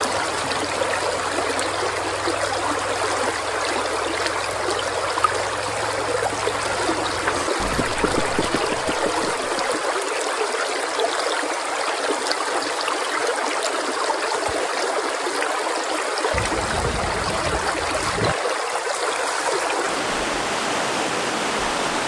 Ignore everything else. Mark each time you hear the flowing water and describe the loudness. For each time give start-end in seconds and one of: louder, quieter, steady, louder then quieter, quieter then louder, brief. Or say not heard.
0.0-22.0 steady.